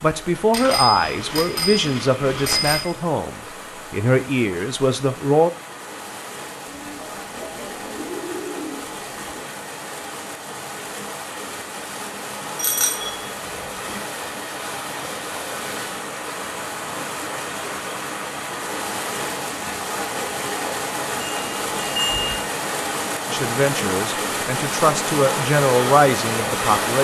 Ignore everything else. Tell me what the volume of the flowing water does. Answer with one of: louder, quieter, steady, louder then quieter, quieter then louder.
louder.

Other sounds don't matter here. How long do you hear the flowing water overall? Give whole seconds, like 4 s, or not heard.
27 s.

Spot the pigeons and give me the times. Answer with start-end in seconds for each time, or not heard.
6.7-9.4.